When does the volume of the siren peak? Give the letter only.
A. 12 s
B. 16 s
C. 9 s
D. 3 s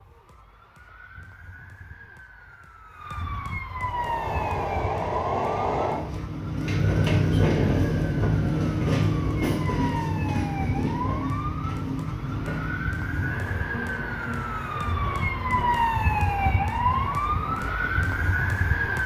B.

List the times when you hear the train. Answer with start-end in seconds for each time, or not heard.
3.8-19.0.